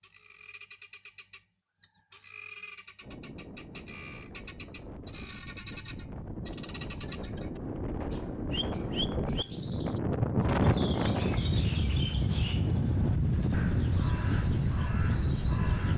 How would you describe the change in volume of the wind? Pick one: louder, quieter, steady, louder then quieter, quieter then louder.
louder.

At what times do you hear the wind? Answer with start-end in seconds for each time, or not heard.
3.0-15.9.